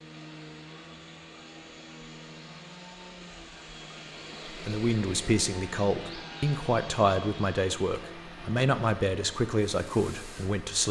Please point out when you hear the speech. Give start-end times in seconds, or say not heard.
4.5-10.8.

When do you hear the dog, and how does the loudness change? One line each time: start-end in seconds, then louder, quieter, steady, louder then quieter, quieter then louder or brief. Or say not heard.
not heard.